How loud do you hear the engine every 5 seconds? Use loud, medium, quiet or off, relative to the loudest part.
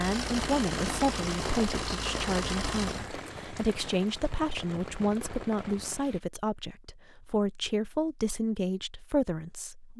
loud, off.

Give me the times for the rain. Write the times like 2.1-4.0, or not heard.
0.0-6.2.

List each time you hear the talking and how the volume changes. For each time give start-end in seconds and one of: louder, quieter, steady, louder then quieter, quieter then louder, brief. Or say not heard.
0.0-9.9 steady.